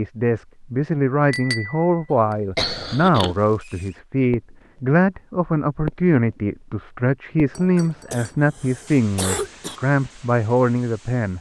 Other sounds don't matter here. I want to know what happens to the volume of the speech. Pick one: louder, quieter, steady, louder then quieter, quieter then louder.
steady.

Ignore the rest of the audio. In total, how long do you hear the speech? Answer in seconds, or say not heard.
11 s.